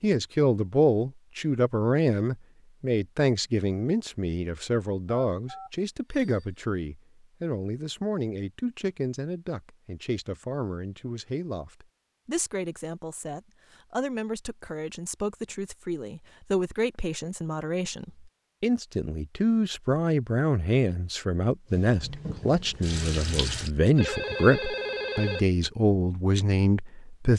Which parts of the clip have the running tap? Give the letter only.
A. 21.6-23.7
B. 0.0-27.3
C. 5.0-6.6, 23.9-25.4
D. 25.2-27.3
A.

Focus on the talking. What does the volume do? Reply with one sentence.
The loudness of the talking goes down, then up.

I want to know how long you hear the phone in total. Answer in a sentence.
You can hear the phone for 3 seconds altogether.